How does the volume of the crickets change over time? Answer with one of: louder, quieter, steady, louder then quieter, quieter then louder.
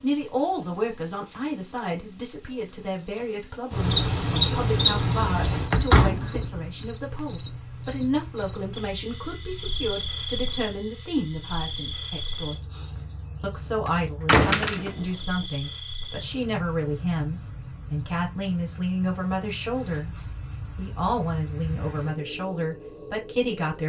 quieter.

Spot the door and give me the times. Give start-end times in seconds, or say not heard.
5.7-6.6, 14.2-15.1.